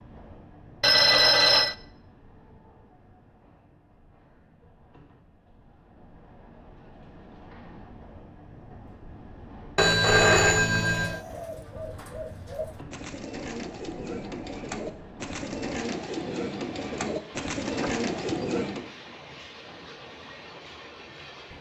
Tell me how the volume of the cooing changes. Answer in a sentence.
The volume of the cooing goes up.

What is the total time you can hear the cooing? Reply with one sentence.
The cooing can be heard for 8 seconds in total.